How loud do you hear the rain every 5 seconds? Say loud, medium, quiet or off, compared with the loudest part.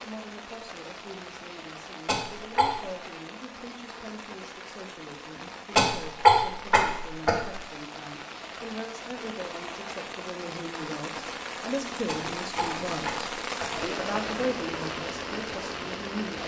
medium, medium, loud, loud.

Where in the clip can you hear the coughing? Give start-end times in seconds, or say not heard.
2.0-2.8, 5.8-7.6, 12.1-13.8.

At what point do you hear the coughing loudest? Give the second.
6 s.